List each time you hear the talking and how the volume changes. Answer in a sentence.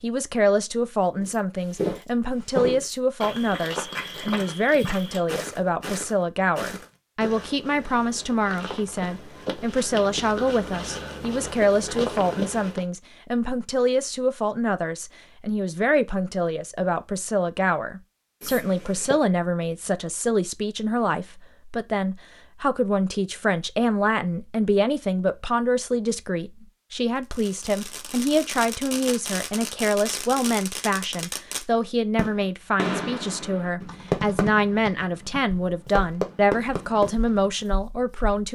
You can hear the talking from 0.0 to 38.5 s, at a steady volume.